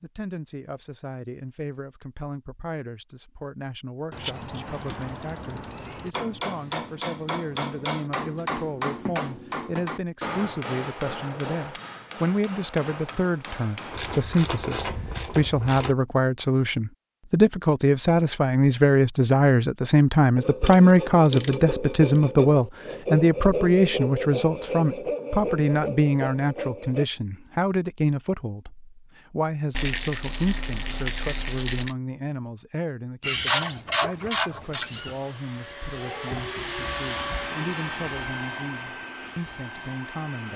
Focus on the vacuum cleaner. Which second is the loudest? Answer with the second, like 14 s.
37 s.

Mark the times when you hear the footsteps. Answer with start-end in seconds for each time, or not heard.
not heard.